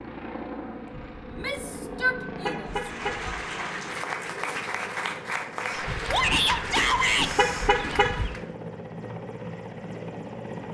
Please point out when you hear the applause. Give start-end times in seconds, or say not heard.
2.6-8.5.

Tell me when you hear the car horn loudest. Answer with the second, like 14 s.
8 s.